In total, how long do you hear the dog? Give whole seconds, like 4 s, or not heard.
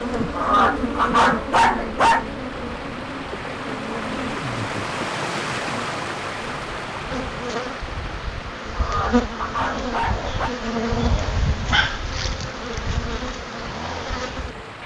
4 s.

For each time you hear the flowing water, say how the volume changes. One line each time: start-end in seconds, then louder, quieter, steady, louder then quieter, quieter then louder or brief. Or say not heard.
0.0-14.8 louder then quieter.